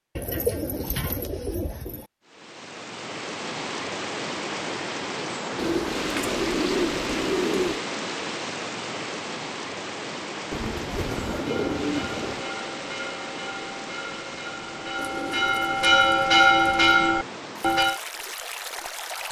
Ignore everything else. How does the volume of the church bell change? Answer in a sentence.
The loudness of the church bell goes up.